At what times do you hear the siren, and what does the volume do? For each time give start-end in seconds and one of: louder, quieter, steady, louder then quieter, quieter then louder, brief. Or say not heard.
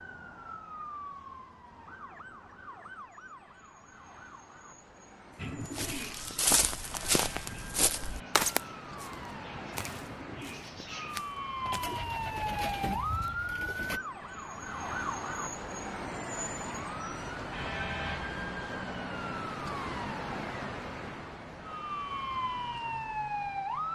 0.0-23.9 louder.